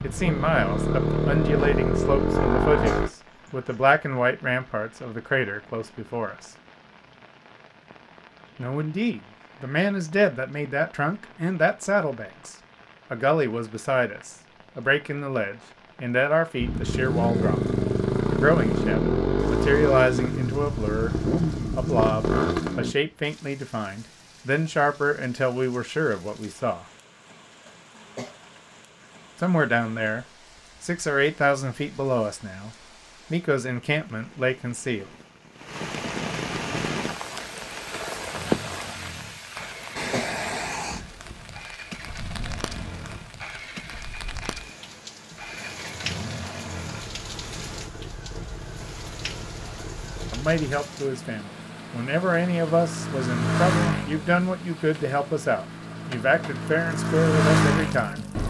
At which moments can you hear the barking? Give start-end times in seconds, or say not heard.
not heard.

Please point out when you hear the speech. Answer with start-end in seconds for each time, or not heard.
0.0-6.5, 8.6-17.6, 18.3-21.1, 21.7-26.9, 29.4-35.1, 50.3-58.2.